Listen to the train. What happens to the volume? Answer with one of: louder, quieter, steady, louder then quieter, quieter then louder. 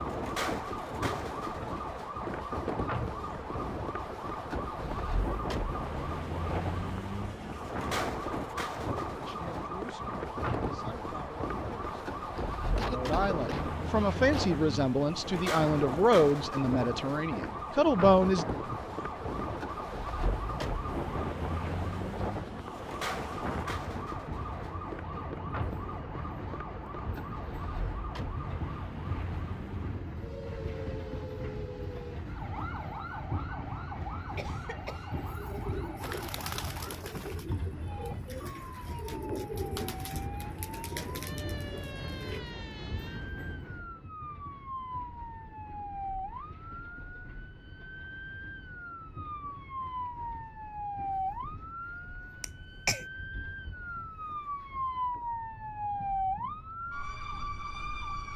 quieter.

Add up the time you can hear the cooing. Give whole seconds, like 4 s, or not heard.
7 s.